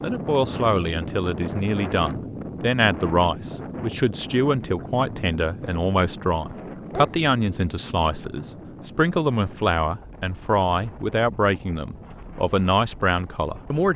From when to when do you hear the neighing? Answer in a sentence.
You can't hear the neighing here.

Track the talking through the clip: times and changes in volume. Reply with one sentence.
You can hear the talking from 0.0 to 13.9 s, at a steady volume.